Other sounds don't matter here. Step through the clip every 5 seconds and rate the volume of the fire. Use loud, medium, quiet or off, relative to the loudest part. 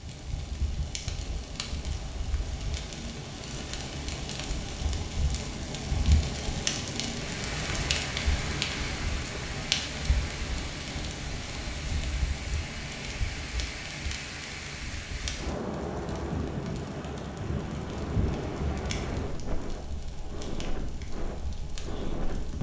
medium, loud, medium, medium, quiet.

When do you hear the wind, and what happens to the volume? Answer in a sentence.
You can hear the wind from 0.0 to 22.5 s, getting louder.